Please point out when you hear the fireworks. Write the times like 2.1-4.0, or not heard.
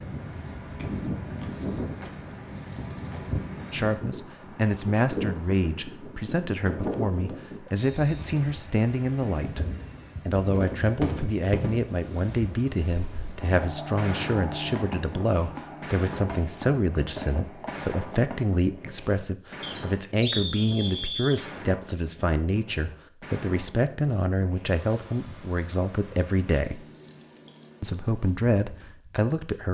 9.2-18.4.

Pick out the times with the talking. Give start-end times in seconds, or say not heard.
3.7-9.7, 10.2-26.9, 27.8-29.6.